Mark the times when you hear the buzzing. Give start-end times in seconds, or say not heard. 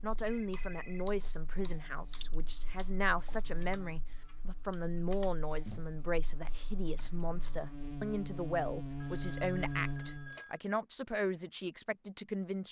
0.0-10.3.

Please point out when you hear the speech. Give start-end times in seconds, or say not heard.
0.0-12.6.